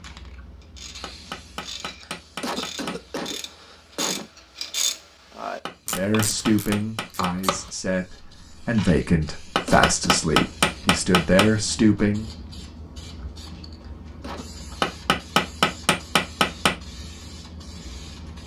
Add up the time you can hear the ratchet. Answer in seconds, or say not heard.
8 s.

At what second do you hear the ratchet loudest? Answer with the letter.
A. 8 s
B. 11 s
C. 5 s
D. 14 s
C.